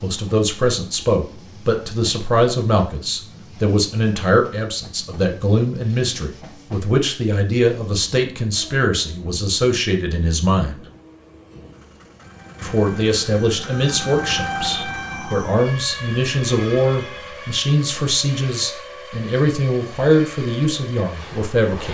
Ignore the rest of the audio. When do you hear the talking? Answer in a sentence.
You can hear the talking from 0.0 to 10.8 s and from 12.6 to 21.8 s.